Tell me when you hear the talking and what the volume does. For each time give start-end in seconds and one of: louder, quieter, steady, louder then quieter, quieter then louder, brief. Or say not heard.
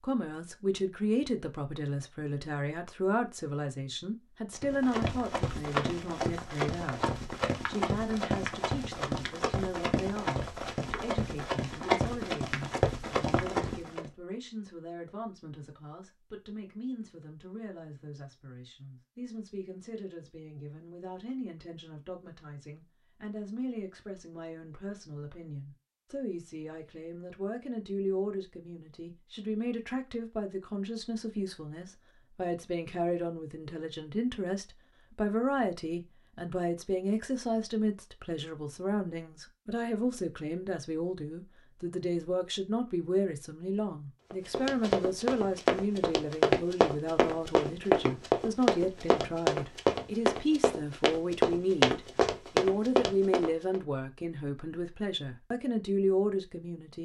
0.0-57.0 quieter then louder.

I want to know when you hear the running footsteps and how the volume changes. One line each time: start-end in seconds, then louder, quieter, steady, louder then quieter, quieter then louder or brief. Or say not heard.
4.6-14.1 steady
44.3-53.8 steady.